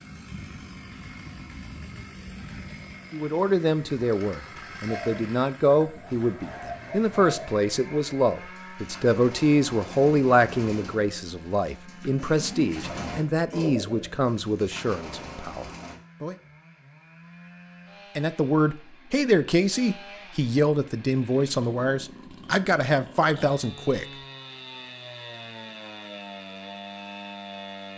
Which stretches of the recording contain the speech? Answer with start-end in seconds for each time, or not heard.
3.1-16.4, 18.1-24.1.